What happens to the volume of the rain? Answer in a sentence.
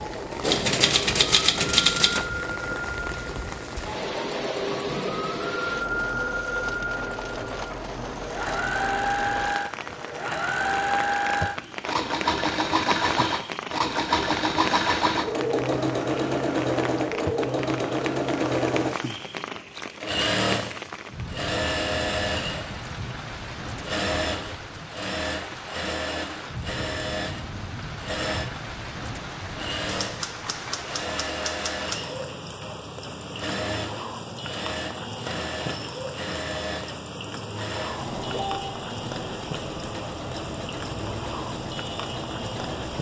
The loudness of the rain stays about the same.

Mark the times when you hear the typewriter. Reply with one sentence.
The typewriter can be heard from 0.4 to 2.2 s and from 29.9 to 32.0 s.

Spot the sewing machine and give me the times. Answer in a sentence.
The sewing machine can be heard from 0.0 to 42.9 s.